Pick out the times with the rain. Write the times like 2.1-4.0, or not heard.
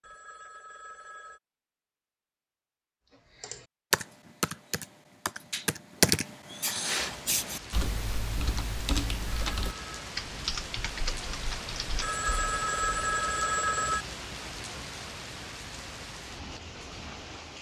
7.0-17.5.